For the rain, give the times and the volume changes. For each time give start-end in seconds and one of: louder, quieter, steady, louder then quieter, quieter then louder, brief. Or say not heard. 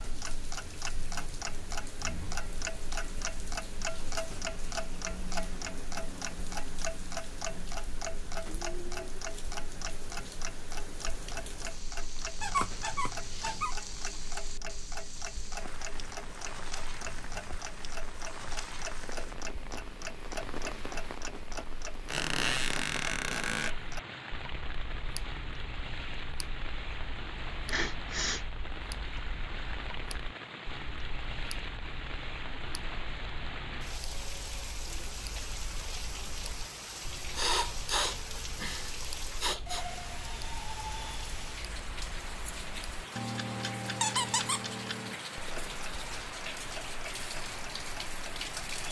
0.0-48.8 louder.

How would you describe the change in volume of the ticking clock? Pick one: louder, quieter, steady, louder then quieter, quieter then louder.
quieter then louder.